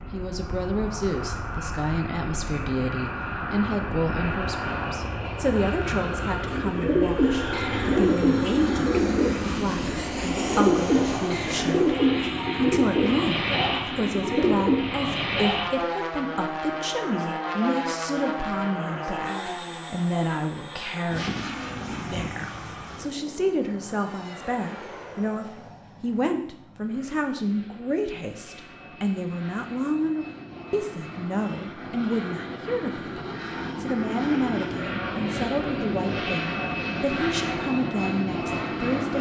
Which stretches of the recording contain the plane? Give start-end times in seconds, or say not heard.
0.0-39.1.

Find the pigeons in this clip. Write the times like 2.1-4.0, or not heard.
6.2-14.9.